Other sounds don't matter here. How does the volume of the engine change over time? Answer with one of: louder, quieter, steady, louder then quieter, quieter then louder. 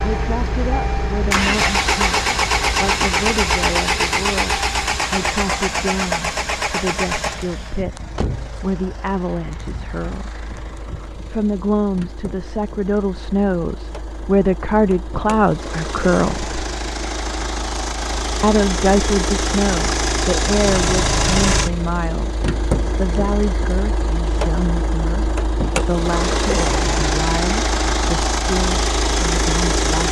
quieter then louder.